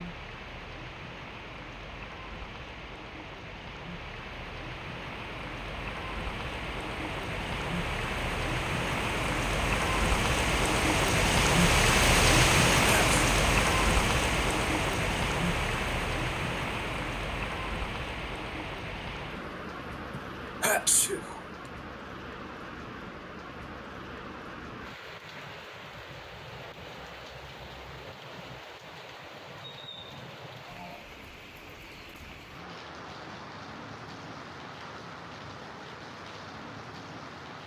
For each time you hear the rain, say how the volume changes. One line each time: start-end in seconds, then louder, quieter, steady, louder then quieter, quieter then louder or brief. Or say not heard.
0.0-37.6 louder then quieter.